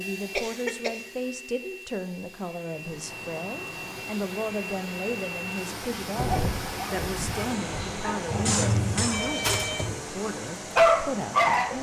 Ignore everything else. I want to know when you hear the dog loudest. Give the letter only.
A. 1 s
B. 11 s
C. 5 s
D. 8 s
B.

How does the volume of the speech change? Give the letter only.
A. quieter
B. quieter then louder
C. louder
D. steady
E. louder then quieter
D.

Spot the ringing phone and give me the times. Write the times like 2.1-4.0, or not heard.
9.1-9.9.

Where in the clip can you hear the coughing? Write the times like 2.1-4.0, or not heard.
0.3-1.1, 8.4-9.8.